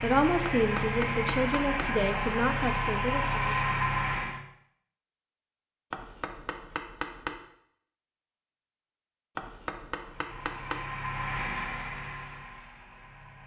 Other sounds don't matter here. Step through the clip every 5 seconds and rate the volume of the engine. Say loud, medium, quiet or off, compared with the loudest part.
loud, off, medium.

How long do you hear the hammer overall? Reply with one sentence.
You can hear the hammer for 4 seconds altogether.